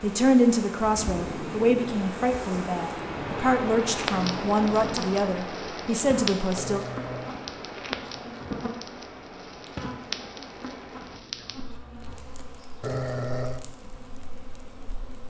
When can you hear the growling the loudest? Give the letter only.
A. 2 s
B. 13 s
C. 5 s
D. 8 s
B.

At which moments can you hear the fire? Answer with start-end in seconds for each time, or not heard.
3.9-15.2.